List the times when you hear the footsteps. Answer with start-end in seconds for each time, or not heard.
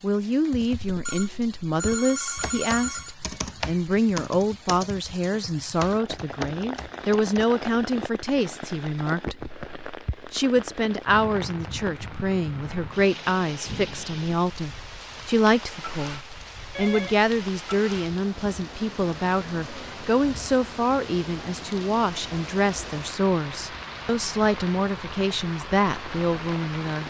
not heard.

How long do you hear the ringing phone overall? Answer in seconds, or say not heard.
3 s.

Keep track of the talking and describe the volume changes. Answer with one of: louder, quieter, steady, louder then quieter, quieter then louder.
steady.